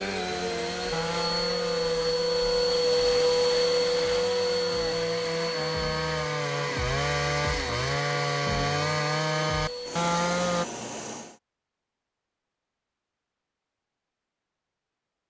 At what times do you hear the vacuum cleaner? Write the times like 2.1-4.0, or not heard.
0.0-11.4.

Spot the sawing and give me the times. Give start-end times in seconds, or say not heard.
0.0-10.7.